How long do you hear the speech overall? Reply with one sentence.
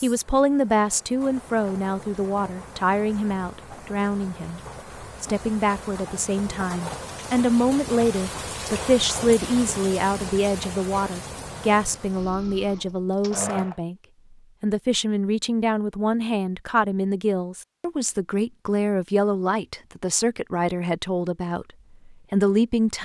The speech can be heard for 22 seconds in total.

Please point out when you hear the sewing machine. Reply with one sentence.
The sewing machine can be heard from 11.9 to 13.8 s.